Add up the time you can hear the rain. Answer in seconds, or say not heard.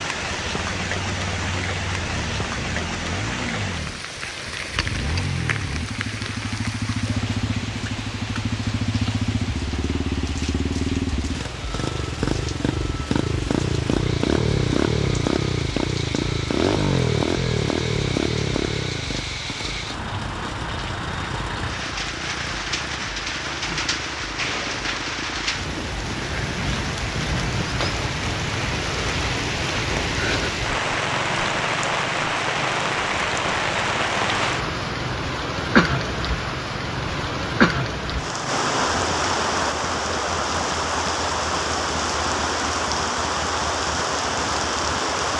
45 s.